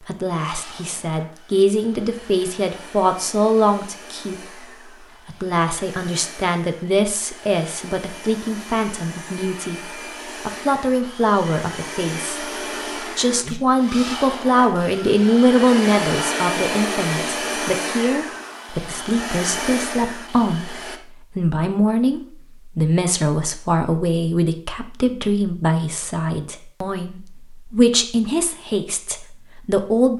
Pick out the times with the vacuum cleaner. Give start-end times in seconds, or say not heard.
0.0-21.0.